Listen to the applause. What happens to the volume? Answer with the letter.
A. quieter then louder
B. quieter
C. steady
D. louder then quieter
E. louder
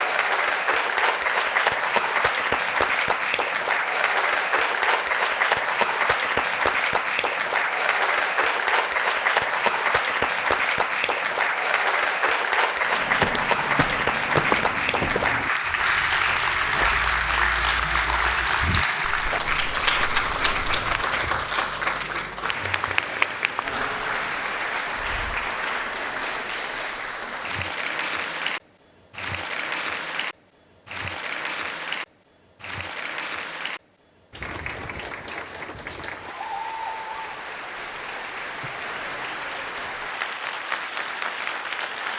B.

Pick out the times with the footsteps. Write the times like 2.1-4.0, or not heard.
12.8-21.4.